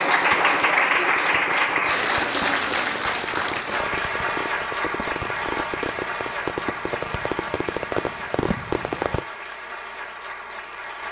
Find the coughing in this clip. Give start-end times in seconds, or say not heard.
not heard.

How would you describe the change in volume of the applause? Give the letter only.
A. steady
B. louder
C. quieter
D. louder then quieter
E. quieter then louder
C.